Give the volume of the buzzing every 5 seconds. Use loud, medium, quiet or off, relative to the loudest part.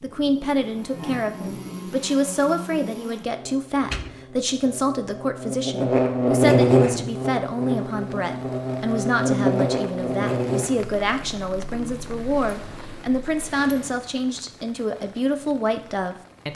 quiet, loud, medium, off.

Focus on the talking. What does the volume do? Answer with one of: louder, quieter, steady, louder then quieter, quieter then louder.
steady.